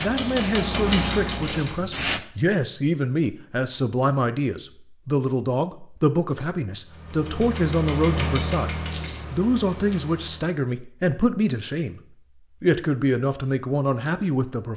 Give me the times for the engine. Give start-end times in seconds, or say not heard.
0.0-1.9, 6.8-10.6.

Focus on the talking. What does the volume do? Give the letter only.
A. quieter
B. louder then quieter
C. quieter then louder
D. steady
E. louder
D.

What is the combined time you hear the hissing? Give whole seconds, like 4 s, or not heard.
2 s.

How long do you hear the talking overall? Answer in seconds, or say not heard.
15 s.